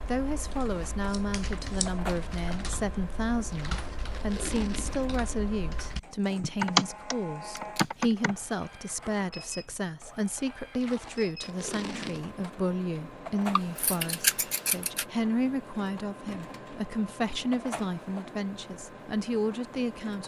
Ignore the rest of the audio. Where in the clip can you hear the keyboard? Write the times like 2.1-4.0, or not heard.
0.0-8.3.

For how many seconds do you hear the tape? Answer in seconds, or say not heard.
3 s.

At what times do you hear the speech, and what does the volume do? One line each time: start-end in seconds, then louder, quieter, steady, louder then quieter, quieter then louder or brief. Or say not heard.
0.1-20.2 steady.